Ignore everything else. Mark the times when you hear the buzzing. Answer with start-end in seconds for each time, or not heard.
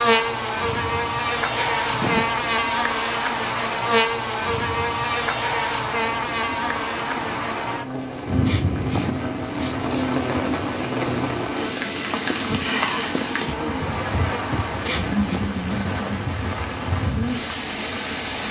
0.0-14.8.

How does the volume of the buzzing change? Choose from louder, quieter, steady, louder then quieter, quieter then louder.
quieter.